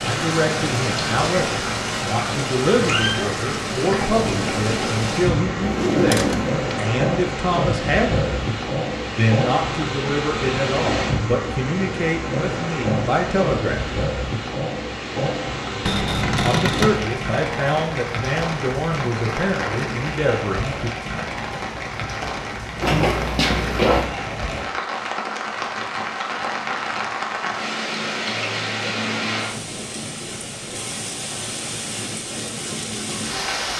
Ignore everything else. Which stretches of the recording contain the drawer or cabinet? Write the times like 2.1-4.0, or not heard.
5.6-6.6, 15.8-17.0, 22.8-24.1.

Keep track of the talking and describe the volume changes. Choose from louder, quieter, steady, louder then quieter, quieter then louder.
steady.